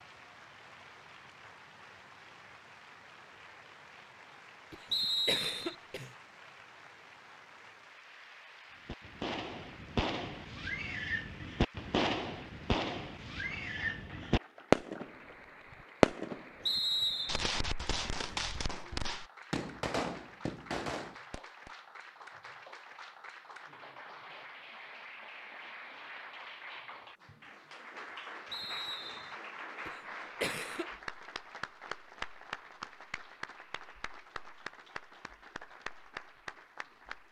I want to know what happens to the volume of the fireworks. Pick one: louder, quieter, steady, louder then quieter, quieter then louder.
louder then quieter.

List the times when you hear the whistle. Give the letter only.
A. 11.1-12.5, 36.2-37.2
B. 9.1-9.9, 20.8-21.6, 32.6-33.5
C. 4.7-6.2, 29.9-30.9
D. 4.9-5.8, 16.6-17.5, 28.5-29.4
D.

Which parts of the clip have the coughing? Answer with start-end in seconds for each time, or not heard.
4.7-6.2, 29.9-30.9.